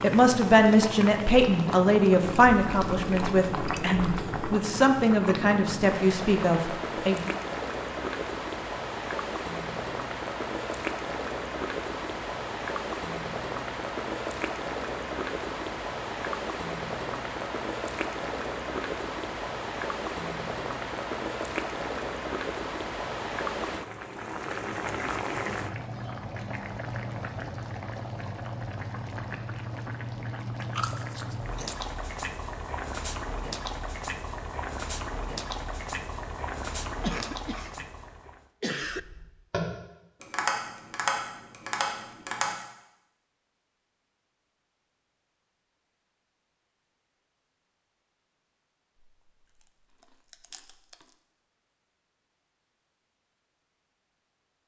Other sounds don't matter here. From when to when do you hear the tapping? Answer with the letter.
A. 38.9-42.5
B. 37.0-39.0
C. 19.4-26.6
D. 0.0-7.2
A.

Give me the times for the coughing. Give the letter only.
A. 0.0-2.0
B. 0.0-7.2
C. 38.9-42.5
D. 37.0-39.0
D.